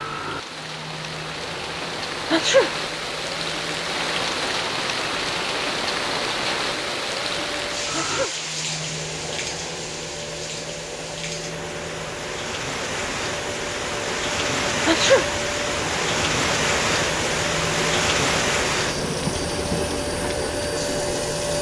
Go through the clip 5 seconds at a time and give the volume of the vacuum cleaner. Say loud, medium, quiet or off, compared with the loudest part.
medium, medium, medium, loud, loud.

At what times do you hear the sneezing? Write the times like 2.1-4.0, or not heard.
2.3-2.8, 7.9-8.4, 14.8-15.3.